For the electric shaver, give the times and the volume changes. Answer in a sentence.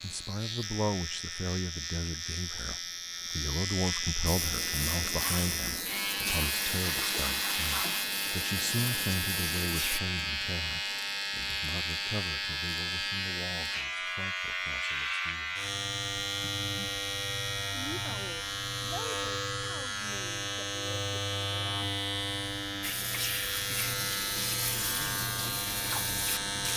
The electric shaver can be heard from 0.0 to 26.7 s, at a steady volume.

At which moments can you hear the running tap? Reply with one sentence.
You can hear the running tap from 4.2 to 10.0 s and from 22.8 to 26.7 s.